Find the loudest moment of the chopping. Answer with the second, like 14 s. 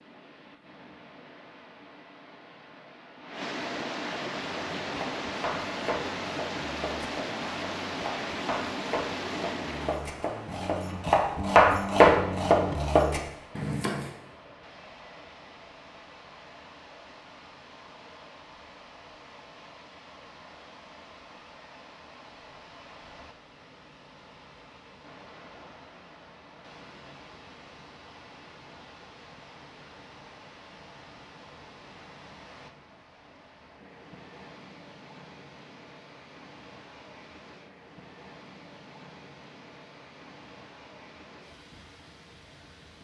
12 s.